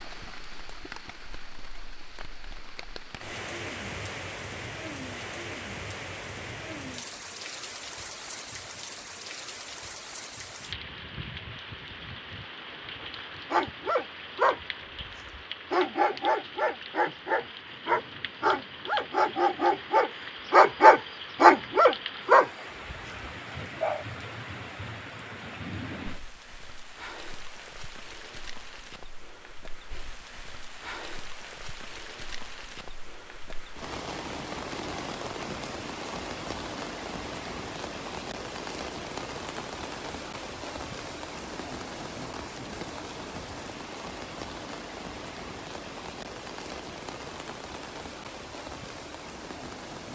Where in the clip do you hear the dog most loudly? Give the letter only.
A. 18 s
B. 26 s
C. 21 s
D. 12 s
C.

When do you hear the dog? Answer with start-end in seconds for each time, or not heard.
13.0-24.1.